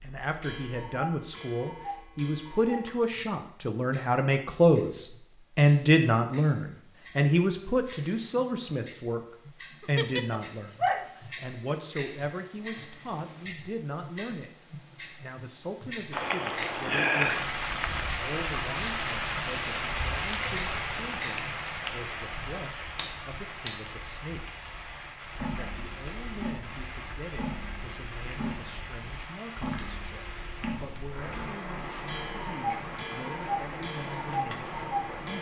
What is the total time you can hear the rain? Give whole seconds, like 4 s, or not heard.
19 s.